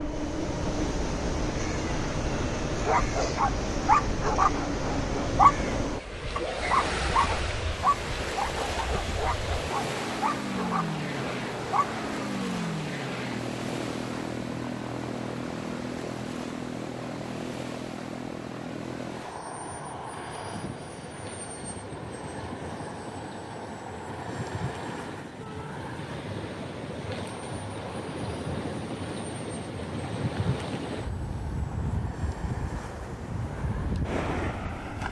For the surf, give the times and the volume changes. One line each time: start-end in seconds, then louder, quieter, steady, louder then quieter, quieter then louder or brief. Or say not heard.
0.0-35.0 quieter then louder.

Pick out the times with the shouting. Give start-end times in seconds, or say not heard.
25.4-25.8.